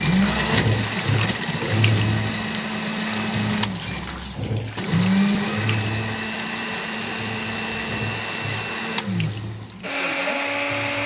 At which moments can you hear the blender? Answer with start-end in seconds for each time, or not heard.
0.0-11.0.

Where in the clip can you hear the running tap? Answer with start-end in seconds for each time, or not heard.
0.0-11.0.